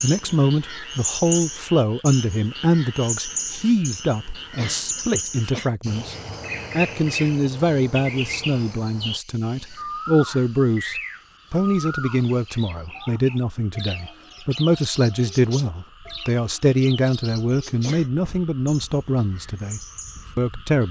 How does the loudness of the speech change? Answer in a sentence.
The loudness of the speech stays about the same.